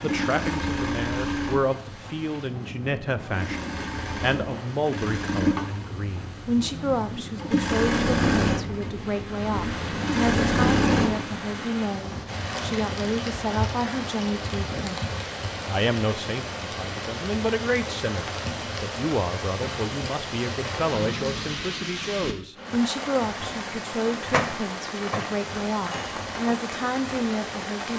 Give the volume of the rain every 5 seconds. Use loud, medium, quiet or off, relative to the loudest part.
medium, medium, loud, loud, loud, loud.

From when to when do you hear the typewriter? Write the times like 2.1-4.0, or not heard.
24.1-26.2.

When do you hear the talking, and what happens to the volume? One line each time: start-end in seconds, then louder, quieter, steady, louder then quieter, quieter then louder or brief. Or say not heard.
0.0-27.9 steady.